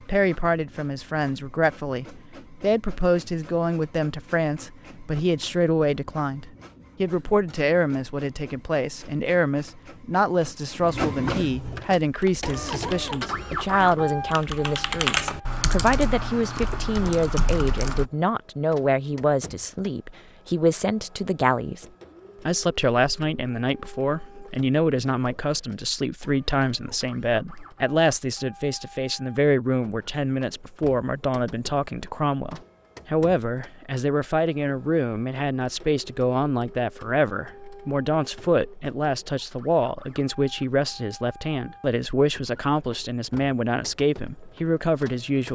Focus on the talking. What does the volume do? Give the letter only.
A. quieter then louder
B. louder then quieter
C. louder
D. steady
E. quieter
D.